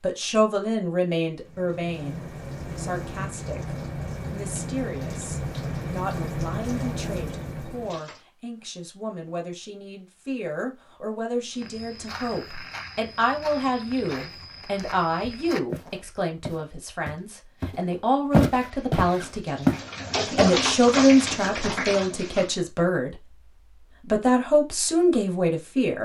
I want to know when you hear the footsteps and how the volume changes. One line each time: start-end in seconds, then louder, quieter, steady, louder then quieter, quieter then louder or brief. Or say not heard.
11.5-19.8 louder.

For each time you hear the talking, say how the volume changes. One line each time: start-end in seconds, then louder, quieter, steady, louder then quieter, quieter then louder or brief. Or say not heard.
0.0-23.4 quieter then louder
24.0-25.9 brief.